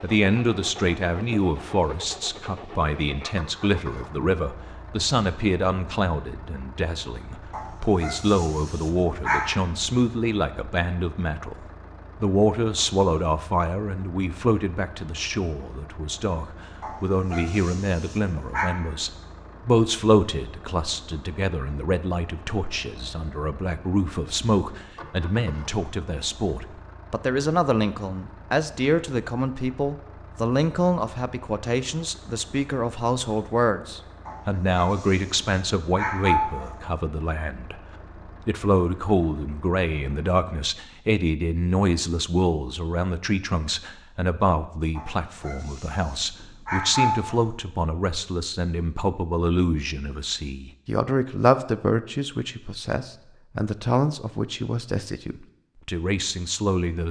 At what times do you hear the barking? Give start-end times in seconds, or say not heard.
7.5-9.6, 16.8-18.7, 34.2-36.8, 45.0-47.5.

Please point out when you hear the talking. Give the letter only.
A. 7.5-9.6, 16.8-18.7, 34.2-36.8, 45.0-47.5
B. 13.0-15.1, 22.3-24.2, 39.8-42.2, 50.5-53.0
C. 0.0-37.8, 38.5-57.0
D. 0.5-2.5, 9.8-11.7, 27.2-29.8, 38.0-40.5
C.